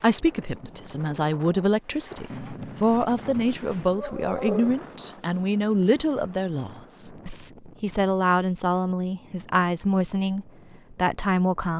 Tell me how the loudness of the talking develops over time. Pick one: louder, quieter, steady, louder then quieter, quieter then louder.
steady.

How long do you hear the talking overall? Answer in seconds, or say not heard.
12 s.